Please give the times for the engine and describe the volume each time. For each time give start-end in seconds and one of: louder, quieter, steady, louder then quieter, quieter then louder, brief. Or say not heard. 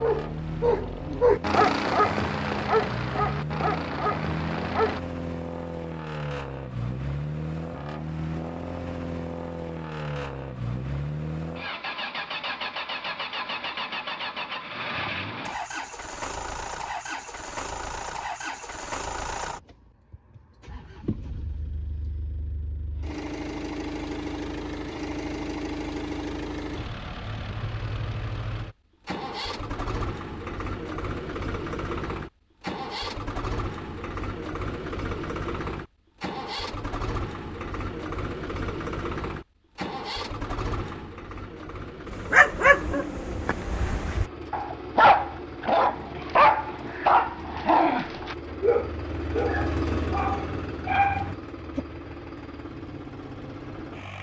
0.0-54.1 steady.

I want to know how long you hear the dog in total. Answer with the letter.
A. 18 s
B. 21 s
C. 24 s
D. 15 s
D.